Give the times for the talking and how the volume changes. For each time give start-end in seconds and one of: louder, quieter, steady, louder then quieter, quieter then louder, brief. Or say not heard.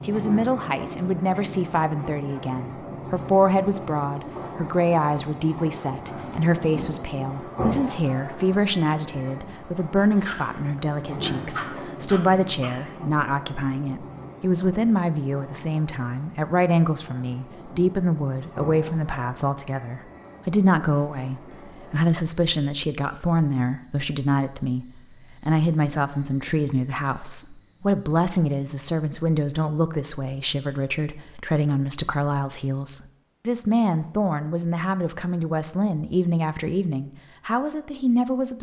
0.0-38.5 steady.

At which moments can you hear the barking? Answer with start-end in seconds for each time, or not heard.
10.2-12.8.